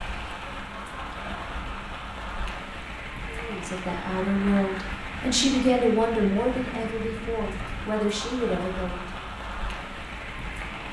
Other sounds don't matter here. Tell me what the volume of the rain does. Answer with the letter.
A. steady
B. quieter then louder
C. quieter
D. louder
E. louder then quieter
A.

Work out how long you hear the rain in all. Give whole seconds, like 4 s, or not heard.
11 s.